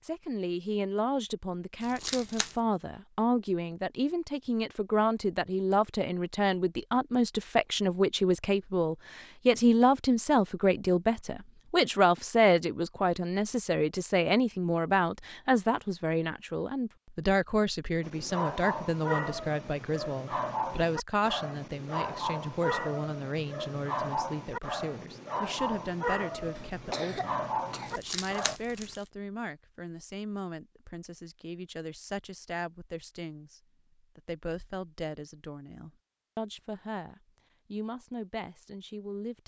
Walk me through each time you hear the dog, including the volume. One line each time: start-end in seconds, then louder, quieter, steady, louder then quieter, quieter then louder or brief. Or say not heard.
18.0-28.6 steady.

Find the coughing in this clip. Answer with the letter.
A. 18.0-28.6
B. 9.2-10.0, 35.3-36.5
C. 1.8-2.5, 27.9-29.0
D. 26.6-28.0
D.